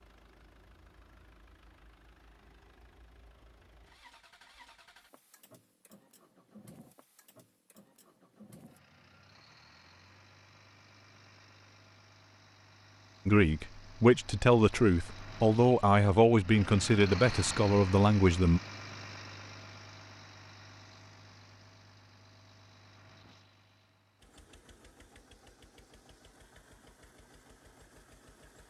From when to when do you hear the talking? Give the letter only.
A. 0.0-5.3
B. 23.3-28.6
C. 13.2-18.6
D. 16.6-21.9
C.